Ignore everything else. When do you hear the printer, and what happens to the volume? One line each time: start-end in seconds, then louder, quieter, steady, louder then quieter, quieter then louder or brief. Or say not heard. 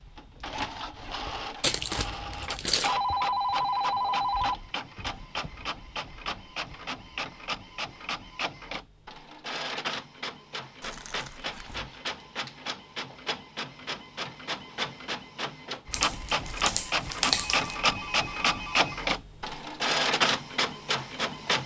0.0-21.6 louder.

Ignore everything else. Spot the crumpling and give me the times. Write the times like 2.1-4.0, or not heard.
1.6-3.0, 10.8-11.8, 15.9-17.8.